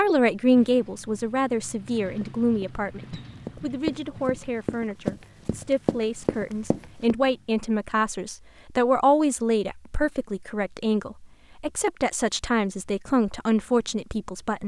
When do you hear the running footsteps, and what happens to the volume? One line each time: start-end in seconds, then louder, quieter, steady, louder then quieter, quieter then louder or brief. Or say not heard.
2.2-7.2 louder.